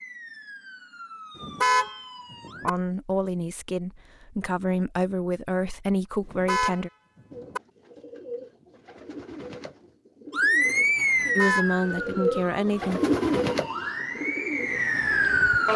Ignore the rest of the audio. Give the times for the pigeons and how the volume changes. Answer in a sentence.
You can hear the pigeons from 7.3 to 15.7 s, getting louder then quieter.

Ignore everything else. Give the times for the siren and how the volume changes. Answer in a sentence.
You can hear the siren briefly from 0.0 to 2.7 s; and from 10.3 to 15.7 s, getting quieter then louder.